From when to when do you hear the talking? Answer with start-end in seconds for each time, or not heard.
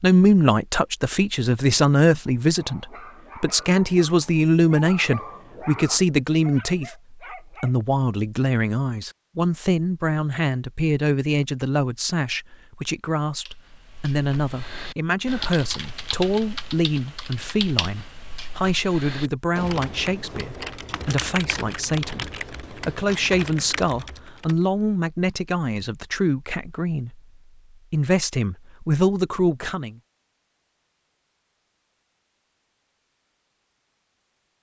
0.0-27.2, 27.9-29.9.